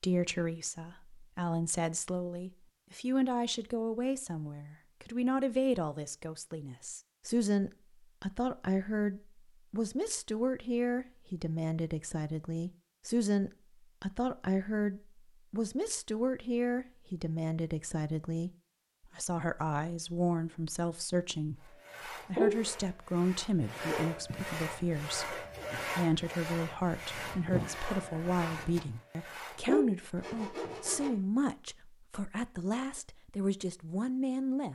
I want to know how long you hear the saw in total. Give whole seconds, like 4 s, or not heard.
9 s.